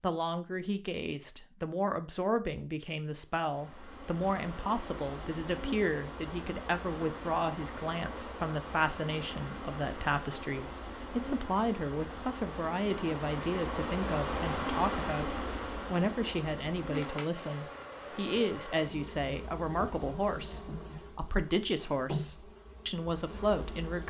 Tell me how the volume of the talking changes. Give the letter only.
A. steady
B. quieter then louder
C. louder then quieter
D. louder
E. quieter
A.